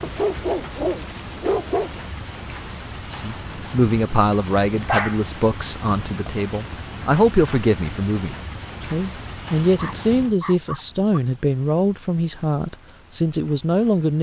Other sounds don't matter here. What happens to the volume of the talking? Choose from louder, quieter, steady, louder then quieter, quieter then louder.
steady.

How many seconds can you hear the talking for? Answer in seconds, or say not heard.
11 s.